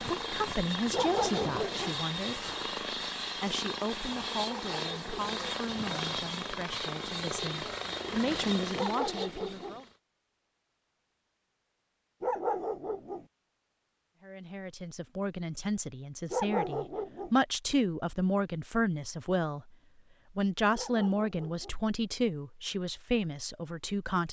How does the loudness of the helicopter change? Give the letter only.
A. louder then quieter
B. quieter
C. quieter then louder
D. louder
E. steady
E.